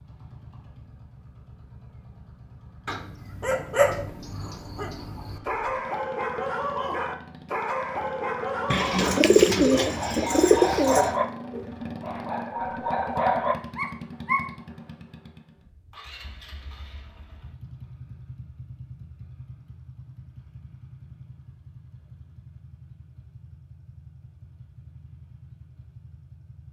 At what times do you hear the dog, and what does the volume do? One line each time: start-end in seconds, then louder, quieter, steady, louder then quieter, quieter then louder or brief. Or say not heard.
2.9-14.4 steady.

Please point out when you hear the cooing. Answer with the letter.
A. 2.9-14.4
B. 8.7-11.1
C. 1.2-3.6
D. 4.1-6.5
B.